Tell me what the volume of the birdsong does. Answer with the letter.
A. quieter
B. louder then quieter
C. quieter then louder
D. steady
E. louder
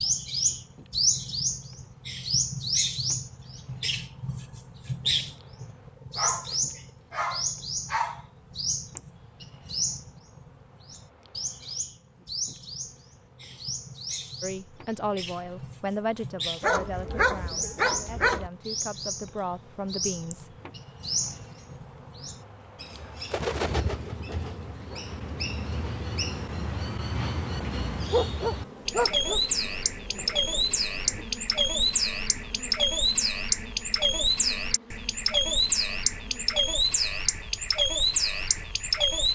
C.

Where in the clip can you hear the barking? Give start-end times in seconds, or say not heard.
6.2-8.2, 16.6-18.5, 28.1-29.4.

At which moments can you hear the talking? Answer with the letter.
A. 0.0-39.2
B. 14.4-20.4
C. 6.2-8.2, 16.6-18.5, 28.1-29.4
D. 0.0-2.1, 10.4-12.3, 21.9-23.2
B.